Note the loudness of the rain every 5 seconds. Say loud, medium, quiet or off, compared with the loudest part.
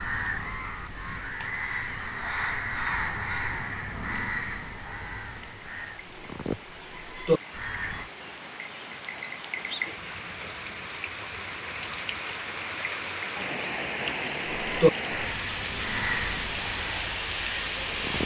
quiet, medium, loud, loud.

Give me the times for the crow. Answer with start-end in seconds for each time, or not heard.
0.0-8.1, 14.6-18.2.